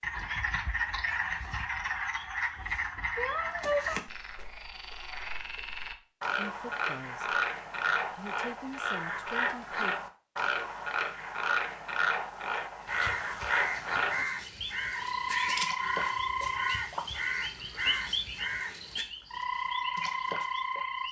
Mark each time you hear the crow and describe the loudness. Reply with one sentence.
You can hear the crow from 12.8 to 19.1 s, at a steady volume.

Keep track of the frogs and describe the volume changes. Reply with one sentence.
The volume of the frogs stays about the same.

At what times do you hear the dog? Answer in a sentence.
The dog can't be heard in this clip.